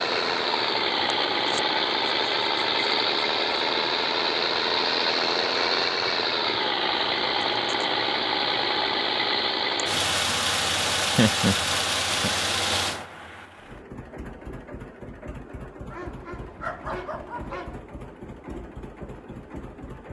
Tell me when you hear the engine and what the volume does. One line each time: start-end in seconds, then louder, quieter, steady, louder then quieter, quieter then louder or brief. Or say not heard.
0.0-20.0 quieter.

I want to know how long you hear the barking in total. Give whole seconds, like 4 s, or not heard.
2 s.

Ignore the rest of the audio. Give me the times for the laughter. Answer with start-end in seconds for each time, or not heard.
11.1-12.3.